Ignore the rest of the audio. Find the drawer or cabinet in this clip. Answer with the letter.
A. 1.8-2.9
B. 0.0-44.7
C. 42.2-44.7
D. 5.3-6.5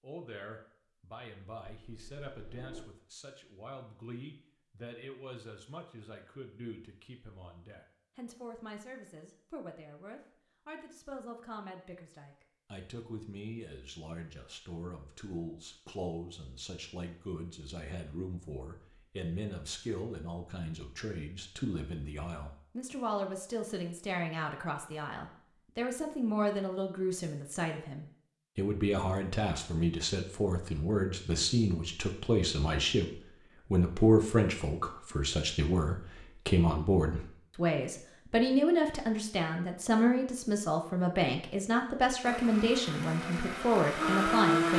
A.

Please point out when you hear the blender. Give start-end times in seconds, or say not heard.
42.2-44.7.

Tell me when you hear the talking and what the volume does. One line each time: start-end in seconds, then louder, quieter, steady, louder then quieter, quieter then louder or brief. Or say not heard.
0.0-44.7 louder.